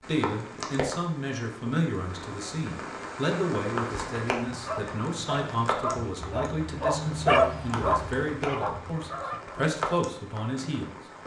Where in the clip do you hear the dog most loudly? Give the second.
7 s.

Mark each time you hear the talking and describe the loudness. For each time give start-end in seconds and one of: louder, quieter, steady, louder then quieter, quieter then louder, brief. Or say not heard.
0.0-11.2 steady.